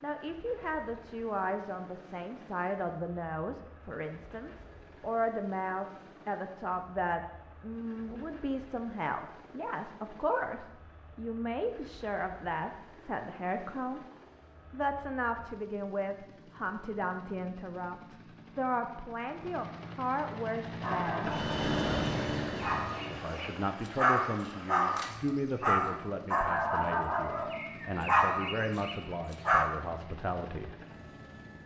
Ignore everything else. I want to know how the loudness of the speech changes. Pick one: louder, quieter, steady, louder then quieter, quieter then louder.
steady.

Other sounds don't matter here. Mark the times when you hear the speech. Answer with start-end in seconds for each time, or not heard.
0.0-14.1, 14.7-21.3, 23.1-30.8.